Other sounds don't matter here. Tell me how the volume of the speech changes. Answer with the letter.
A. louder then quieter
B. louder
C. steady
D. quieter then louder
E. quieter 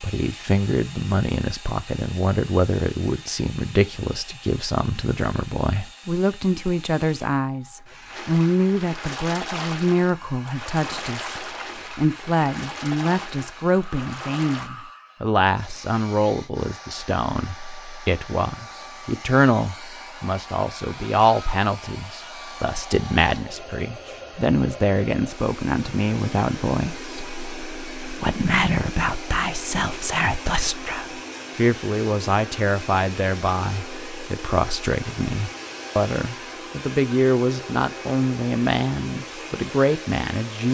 C.